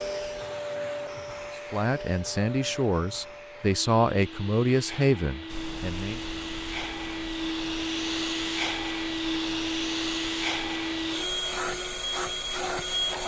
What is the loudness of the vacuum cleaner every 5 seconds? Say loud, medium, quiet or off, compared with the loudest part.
medium, loud, loud.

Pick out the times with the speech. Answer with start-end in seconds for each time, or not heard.
1.7-6.2.